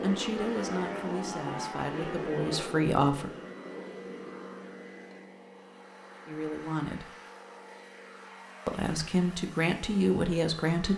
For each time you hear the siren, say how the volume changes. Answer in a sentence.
You can't hear the siren here.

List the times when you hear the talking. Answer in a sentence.
The talking can be heard from 0.0 to 3.3 s, from 6.2 to 7.2 s and from 8.7 to 10.9 s.